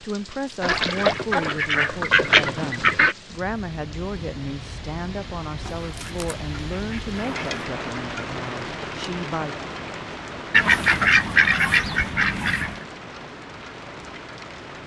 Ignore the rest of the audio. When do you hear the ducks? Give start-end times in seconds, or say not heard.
0.6-3.1, 5.7-7.7, 10.5-12.8.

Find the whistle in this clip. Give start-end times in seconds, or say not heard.
not heard.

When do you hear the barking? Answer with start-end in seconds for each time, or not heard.
not heard.